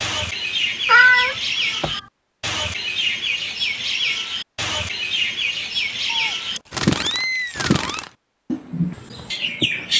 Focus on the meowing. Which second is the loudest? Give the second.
1 s.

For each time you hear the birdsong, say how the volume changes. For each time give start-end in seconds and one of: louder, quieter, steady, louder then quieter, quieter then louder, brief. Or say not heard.
0.0-9.9 steady.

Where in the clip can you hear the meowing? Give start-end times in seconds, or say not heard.
0.8-2.0, 6.0-8.1.